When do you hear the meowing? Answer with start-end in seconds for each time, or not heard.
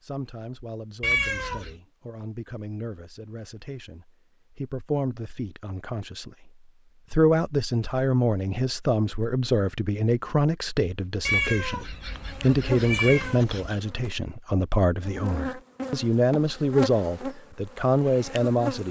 1.0-1.8, 11.2-13.8.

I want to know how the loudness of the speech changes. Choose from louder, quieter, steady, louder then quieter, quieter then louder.
louder.